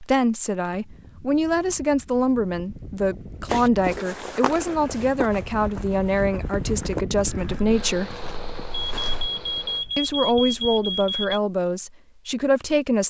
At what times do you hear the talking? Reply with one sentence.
You can hear the talking from 0.0 to 8.2 s and from 9.9 to 13.0 s.